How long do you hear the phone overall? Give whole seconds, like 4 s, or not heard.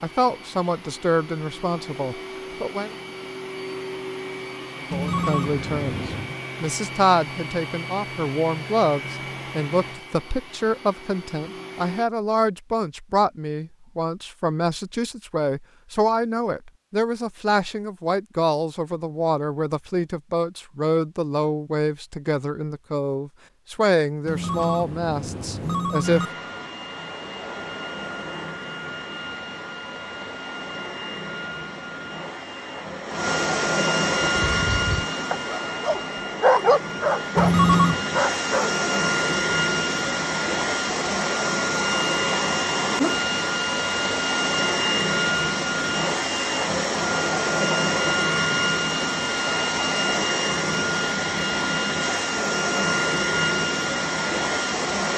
4 s.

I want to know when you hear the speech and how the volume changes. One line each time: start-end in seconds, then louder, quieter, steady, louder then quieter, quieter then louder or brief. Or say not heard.
0.0-3.0 brief
4.9-26.2 steady.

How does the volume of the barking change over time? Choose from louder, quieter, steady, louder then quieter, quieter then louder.
louder then quieter.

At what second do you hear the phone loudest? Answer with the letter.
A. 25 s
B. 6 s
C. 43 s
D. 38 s
D.